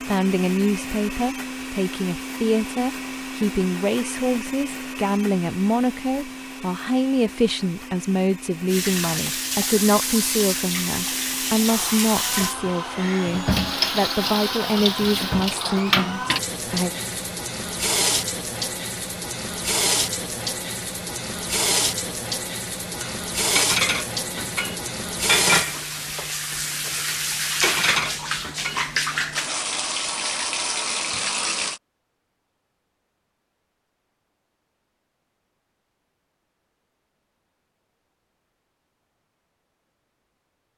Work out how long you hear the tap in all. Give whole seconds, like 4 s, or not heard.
23 s.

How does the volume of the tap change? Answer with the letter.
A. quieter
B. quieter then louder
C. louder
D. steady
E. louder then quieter
D.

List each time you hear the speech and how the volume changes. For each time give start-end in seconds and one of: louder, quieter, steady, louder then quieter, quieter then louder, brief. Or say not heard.
0.1-16.9 steady.